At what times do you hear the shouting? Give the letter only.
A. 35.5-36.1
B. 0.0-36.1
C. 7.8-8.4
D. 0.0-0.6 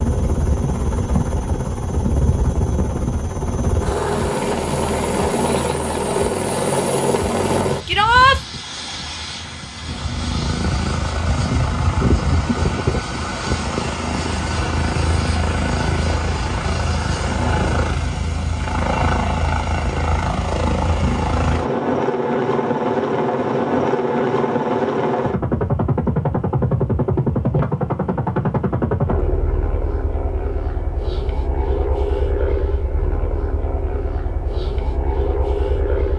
C.